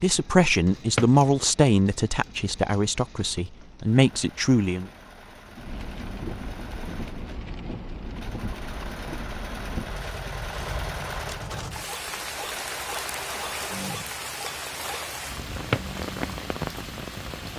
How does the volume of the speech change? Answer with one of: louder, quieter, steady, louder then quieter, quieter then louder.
quieter then louder.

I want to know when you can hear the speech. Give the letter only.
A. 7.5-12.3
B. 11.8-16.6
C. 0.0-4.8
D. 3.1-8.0
C.